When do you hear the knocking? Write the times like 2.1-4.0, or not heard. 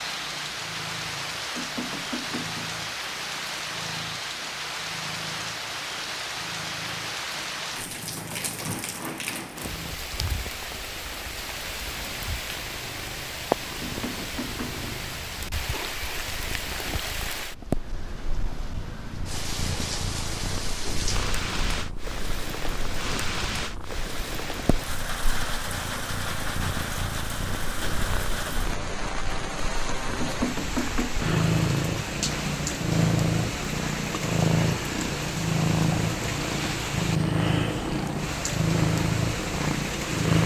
1.6-2.8, 13.8-14.8, 30.2-31.3.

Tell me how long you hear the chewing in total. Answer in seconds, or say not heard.
not heard.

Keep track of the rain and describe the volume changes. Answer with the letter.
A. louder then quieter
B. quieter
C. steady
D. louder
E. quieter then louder
C.